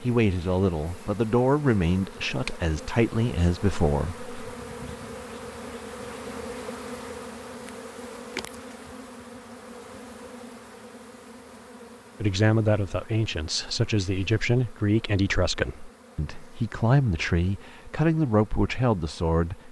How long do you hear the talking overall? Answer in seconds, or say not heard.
12 s.